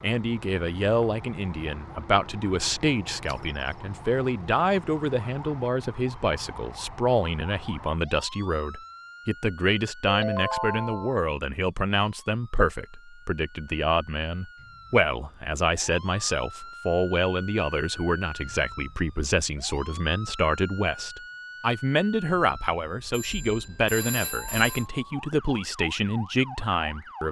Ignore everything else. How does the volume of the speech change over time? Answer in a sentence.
The volume of the speech stays about the same.